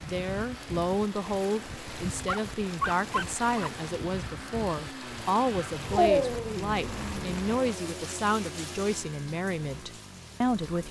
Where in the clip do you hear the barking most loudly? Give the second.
6 s.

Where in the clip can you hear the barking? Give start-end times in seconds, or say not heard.
2.2-3.7, 5.9-7.3.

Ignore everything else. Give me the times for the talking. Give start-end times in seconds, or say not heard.
0.0-10.8.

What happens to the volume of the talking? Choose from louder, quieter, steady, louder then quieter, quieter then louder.
steady.